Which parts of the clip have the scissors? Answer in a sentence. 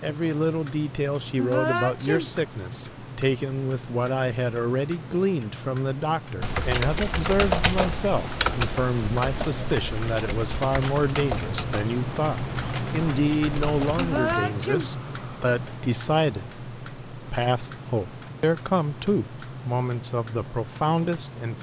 The scissors can't be heard in this clip.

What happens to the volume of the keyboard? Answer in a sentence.
The volume of the keyboard goes down.